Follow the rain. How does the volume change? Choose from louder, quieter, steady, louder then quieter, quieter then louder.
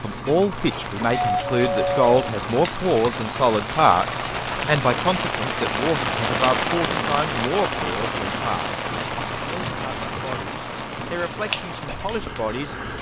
louder then quieter.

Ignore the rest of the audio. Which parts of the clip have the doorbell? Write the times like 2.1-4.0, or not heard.
1.1-2.3.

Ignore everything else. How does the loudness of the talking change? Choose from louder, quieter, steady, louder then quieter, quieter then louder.
quieter.